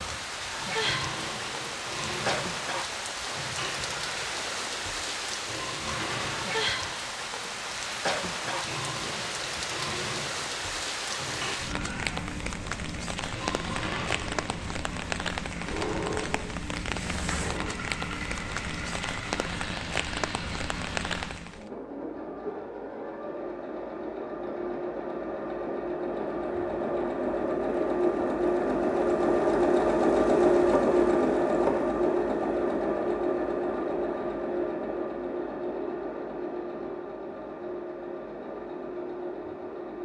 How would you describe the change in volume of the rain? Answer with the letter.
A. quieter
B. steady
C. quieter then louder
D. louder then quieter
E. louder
B.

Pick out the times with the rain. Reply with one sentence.
You can hear the rain from 0.0 to 21.6 s.